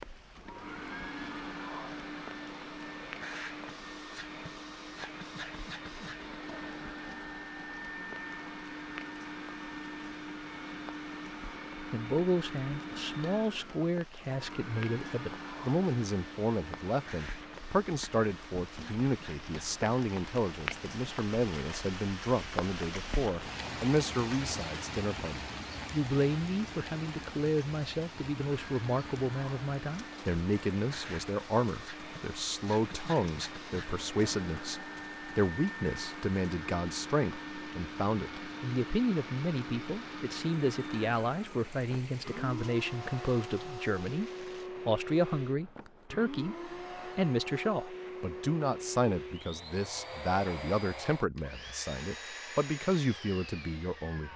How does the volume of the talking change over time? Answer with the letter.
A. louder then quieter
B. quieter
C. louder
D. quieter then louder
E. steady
E.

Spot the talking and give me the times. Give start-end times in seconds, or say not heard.
11.9-54.3.